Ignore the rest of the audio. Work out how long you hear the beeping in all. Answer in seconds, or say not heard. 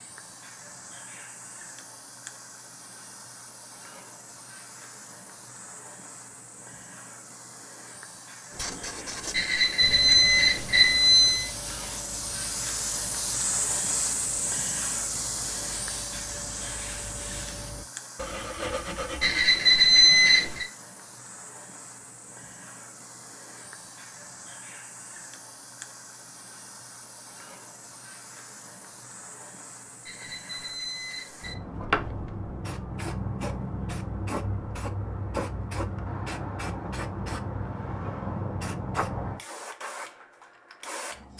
5 s.